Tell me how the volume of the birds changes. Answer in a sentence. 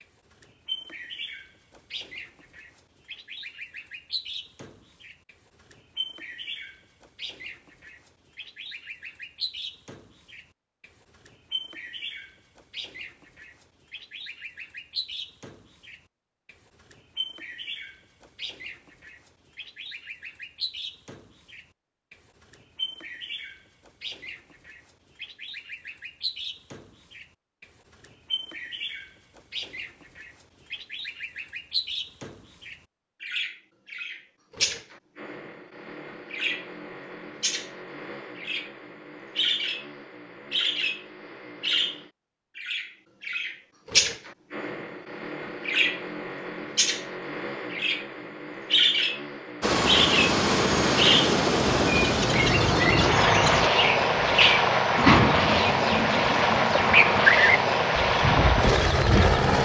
The volume of the birds goes up.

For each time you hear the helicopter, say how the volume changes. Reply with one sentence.
The helicopter can be heard from 49.6 to 59.6 s, at a steady volume.